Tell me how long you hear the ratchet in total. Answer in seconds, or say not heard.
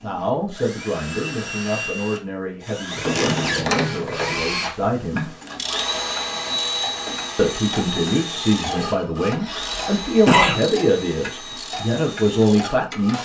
10 s.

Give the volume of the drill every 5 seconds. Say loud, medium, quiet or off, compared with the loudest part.
loud, loud, medium.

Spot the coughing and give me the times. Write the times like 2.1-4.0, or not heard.
9.4-10.6.